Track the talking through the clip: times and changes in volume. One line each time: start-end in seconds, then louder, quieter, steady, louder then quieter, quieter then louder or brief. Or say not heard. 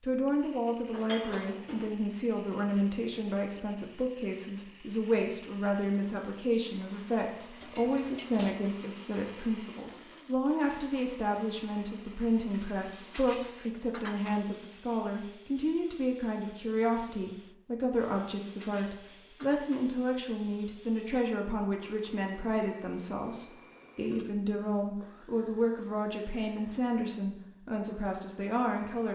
0.0-29.1 steady.